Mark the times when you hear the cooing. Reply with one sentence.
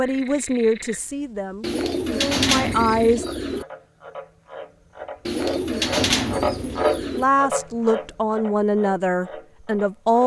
You can hear the cooing from 1.6 to 3.6 s and from 5.2 to 7.2 s.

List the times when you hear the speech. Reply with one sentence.
The speech can be heard from 0.0 to 3.2 s and from 7.2 to 10.2 s.